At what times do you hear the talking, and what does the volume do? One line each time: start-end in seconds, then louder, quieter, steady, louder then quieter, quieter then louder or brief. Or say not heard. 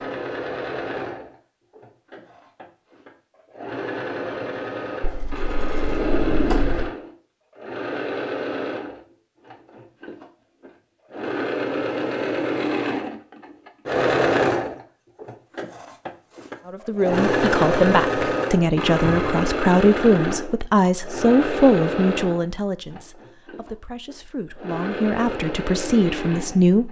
16.6-26.8 quieter then louder.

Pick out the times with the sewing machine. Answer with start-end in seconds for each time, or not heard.
0.0-26.8.